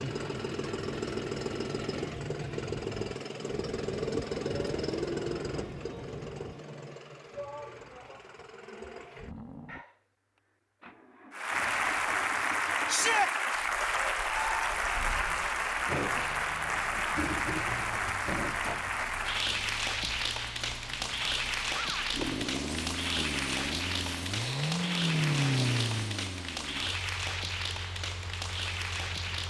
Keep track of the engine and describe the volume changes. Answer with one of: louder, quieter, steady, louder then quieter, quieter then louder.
quieter then louder.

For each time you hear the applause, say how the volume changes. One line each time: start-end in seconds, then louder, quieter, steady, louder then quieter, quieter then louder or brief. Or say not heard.
11.3-29.4 quieter.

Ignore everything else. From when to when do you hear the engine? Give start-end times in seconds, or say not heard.
0.0-29.4.